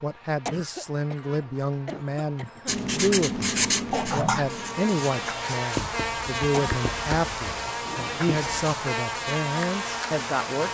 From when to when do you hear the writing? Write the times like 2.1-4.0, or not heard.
2.6-8.8.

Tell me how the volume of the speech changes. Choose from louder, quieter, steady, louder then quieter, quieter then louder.
steady.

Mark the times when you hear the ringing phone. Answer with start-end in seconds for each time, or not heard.
3.9-4.6.